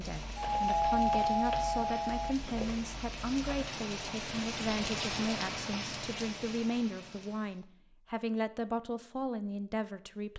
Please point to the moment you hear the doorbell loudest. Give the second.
1 s.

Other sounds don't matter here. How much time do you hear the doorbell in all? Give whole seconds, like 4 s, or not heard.
2 s.